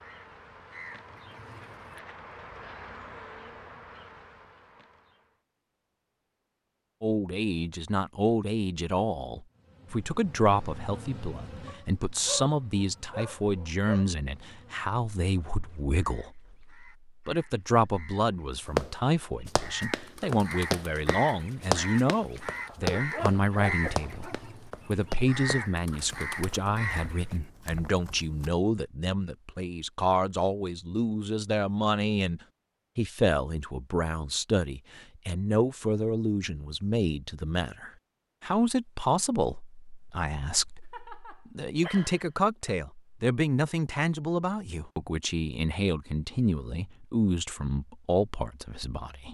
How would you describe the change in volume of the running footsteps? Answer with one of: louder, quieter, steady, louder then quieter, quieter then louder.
quieter.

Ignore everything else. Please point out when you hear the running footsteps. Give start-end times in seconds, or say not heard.
18.8-28.5.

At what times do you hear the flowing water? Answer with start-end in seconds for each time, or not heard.
not heard.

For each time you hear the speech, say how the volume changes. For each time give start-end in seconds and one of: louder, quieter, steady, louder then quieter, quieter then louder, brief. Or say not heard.
7.0-49.2 steady.